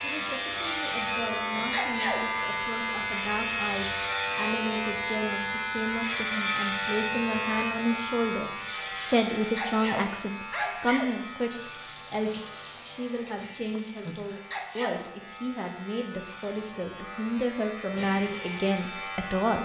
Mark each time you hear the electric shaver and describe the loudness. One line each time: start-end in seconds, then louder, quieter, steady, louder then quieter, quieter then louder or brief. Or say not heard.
0.0-19.6 quieter then louder.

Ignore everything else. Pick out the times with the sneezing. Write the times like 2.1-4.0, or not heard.
1.6-2.2, 9.3-11.1, 14.2-15.1.